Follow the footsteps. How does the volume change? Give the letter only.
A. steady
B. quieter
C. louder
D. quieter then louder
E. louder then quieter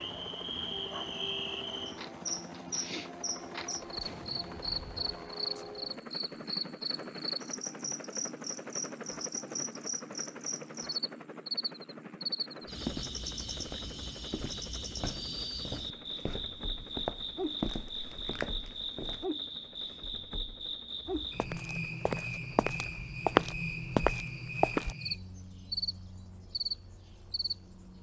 C.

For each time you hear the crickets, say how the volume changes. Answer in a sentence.
You can hear the crickets from 0.0 to 27.9 s, at a steady volume.